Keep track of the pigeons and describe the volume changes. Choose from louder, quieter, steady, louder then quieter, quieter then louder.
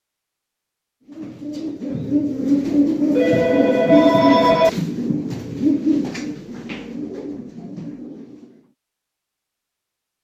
quieter.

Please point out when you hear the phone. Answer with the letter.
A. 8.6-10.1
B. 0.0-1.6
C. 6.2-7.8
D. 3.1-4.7
D.